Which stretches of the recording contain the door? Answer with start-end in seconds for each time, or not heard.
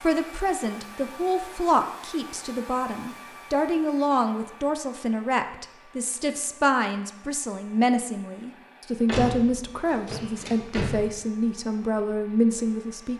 9.1-11.1.